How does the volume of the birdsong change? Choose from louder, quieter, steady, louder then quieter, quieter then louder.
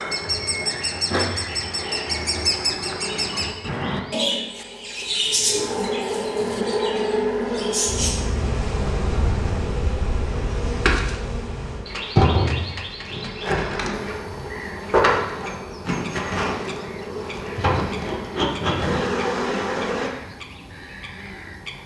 quieter.